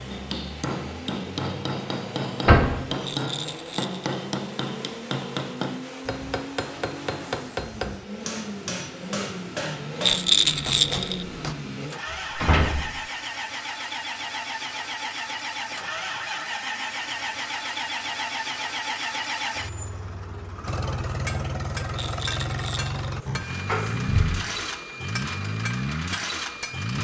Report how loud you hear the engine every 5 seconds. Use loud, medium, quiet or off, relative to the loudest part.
medium, medium, loud, loud, loud, loud.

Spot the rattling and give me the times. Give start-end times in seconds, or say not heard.
3.0-4.0, 10.0-11.2, 21.9-22.9.